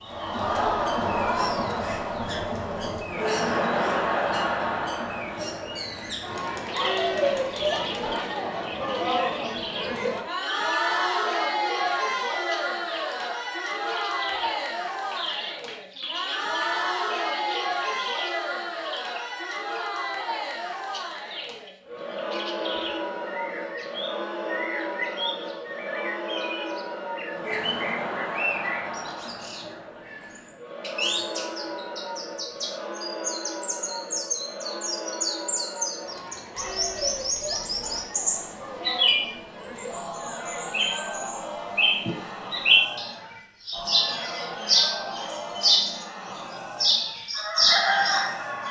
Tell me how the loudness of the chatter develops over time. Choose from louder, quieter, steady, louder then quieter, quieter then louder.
quieter.